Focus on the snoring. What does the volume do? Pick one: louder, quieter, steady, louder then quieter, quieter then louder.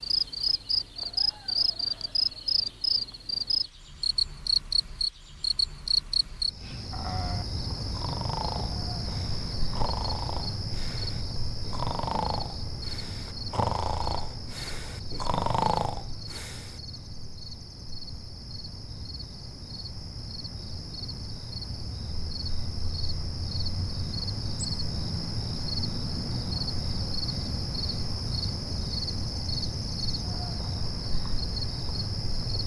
louder.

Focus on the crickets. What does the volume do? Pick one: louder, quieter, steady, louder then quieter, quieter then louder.
quieter then louder.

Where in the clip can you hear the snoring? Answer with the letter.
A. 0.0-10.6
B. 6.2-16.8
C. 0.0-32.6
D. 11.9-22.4
B.